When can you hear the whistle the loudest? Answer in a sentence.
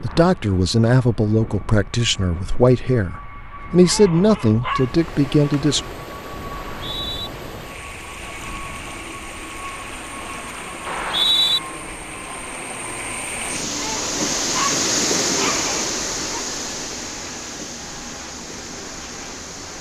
The volume of the whistle peaks at 11 seconds.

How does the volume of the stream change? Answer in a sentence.
The volume of the stream goes up, then down.